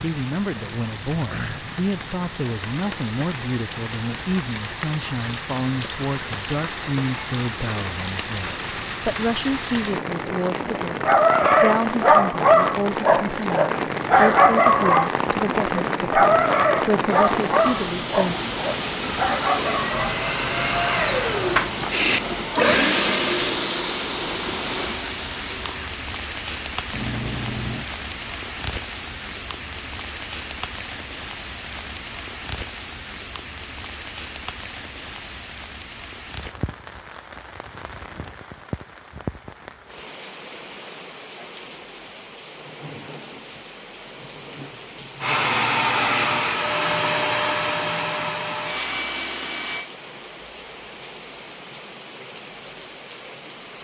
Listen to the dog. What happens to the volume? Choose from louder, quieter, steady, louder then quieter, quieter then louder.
quieter.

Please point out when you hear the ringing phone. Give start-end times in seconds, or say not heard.
26.9-27.9.